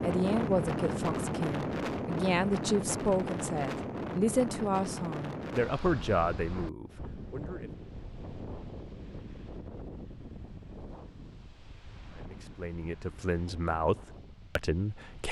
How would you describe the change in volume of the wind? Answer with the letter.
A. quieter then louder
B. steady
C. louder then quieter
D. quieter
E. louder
D.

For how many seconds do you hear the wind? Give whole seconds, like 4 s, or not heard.
15 s.